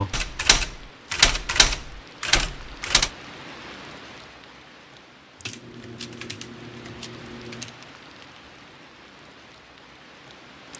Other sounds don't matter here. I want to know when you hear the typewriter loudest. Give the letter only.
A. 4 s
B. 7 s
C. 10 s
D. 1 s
D.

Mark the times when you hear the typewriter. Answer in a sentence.
You can hear the typewriter from 0.1 to 3.1 s and from 5.5 to 7.8 s.